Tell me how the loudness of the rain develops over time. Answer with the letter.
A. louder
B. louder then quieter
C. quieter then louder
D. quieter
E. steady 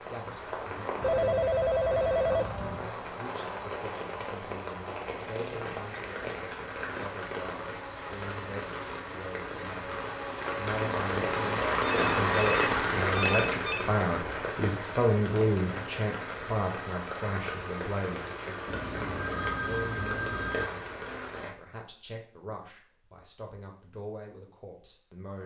B.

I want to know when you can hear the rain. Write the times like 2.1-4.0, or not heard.
0.0-21.6.